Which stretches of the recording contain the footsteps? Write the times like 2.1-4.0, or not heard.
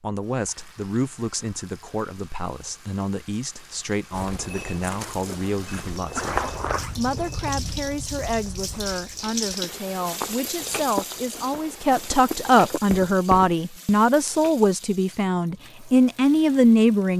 4.1-13.6.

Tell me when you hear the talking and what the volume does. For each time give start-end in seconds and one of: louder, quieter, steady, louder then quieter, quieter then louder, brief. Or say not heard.
0.0-17.1 louder.